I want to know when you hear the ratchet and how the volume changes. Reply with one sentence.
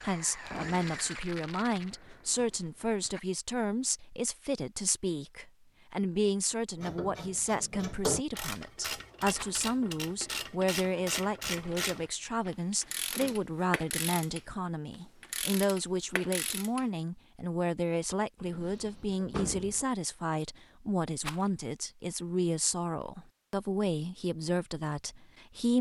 You can hear the ratchet from 6.8 to 16.9 s, at a steady volume.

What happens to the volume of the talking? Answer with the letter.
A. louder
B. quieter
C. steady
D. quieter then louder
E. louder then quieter
C.